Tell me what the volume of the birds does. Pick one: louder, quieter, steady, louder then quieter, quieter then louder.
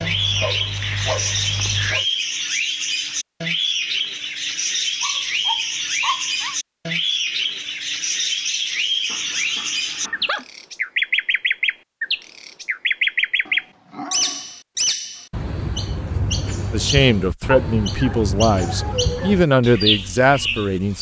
steady.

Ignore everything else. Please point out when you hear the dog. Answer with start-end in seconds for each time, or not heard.
0.0-2.0, 5.0-6.5, 9.1-10.4, 13.4-14.6, 17.5-19.4.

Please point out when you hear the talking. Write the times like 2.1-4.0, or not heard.
16.7-20.9.